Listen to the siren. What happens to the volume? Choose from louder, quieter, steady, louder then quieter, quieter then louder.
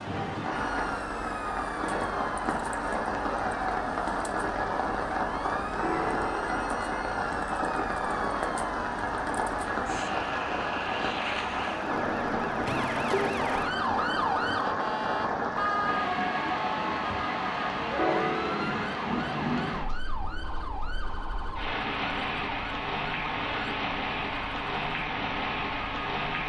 louder then quieter.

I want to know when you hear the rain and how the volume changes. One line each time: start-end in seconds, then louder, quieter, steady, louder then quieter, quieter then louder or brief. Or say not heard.
0.0-26.4 steady.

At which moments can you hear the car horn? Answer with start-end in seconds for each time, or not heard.
5.8-7.0, 17.9-18.8.